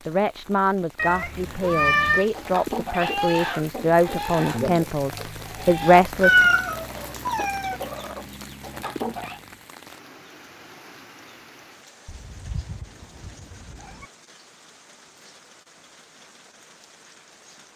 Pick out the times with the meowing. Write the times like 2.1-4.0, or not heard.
0.9-2.2, 6.2-7.8, 12.1-14.1.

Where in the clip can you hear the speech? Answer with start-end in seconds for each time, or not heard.
0.1-6.5.